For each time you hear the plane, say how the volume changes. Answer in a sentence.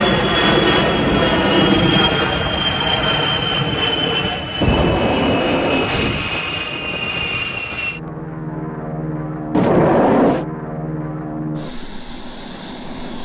You can hear the plane from 0.0 to 13.2 s, getting quieter.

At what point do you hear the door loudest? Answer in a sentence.
The volume of the door peaks at 10 seconds.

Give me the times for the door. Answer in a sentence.
You can hear the door from 0.4 to 1.9 s, from 4.6 to 6.3 s and from 9.5 to 10.4 s.